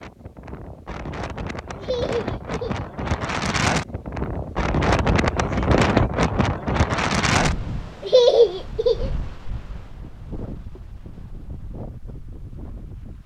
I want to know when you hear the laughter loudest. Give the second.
8 s.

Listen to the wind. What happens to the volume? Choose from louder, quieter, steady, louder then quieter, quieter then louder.
louder then quieter.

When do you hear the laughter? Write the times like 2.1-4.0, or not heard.
1.8-2.9, 8.0-9.1.